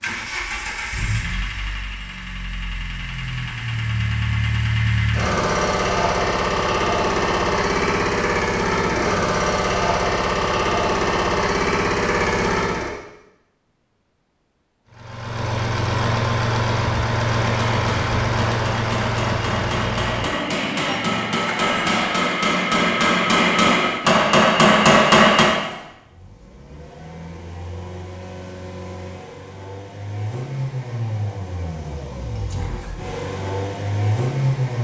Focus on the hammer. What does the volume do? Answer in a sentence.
The loudness of the hammer goes up.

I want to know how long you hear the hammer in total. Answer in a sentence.
You can hear the hammer for 8 seconds altogether.